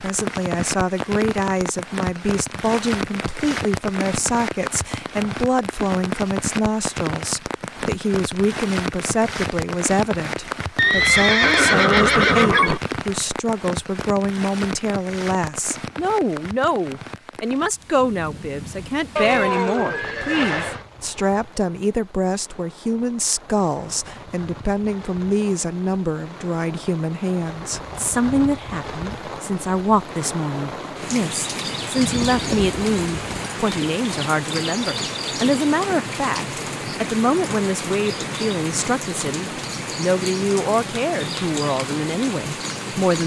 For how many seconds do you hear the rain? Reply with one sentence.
The rain can be heard for 43 seconds in total.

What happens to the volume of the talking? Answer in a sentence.
The loudness of the talking stays about the same.